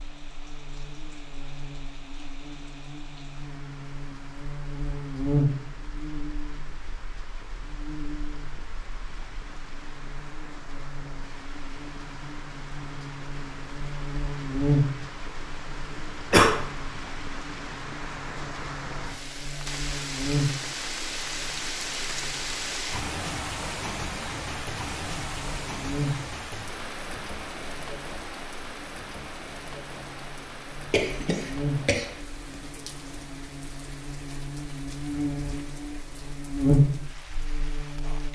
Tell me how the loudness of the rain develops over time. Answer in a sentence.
The loudness of the rain goes up, then down.